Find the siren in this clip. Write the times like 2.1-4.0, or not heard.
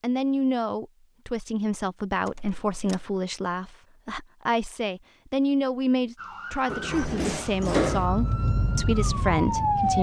6.2-9.9.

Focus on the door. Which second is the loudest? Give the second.
8 s.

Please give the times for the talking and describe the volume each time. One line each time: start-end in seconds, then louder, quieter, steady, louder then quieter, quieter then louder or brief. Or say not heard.
0.0-9.9 steady.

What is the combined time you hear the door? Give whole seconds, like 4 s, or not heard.
2 s.